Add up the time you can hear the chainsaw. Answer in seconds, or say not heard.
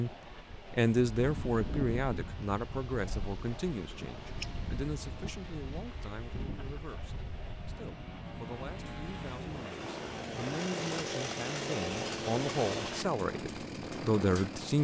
15 s.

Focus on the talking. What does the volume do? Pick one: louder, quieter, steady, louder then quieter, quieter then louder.
quieter then louder.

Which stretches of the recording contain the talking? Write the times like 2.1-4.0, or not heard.
0.0-14.7.